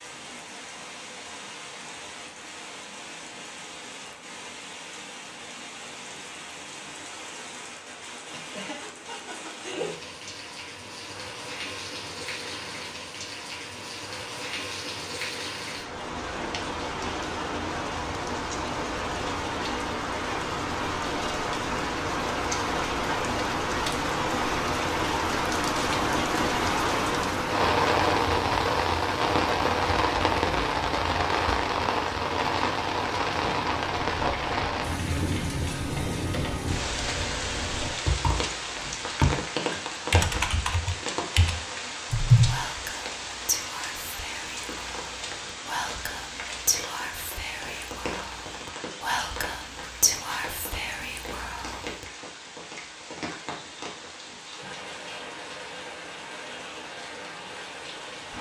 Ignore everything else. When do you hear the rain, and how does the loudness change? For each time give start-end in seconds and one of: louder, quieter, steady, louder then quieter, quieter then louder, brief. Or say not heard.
0.0-58.3 louder then quieter.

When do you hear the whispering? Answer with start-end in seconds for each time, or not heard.
42.5-52.0.